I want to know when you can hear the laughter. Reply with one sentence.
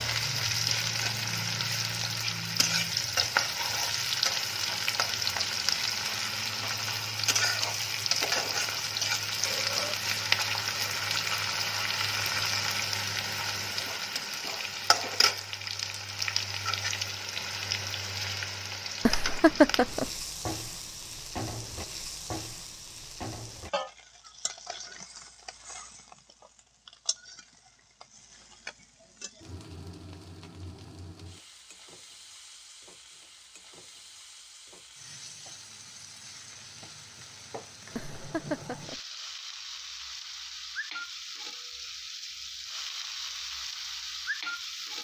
The laughter can be heard from 19.1 to 20.1 s and from 38.0 to 39.0 s.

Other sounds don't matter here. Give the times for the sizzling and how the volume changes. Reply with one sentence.
The sizzling can be heard from 0.0 to 44.9 s, getting quieter then louder.